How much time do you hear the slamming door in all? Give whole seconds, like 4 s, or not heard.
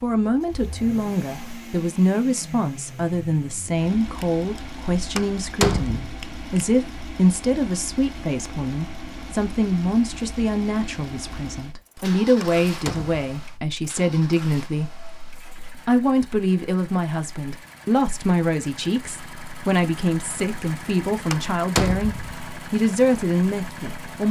3 s.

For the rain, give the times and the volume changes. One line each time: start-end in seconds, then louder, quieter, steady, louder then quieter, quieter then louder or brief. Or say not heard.
not heard.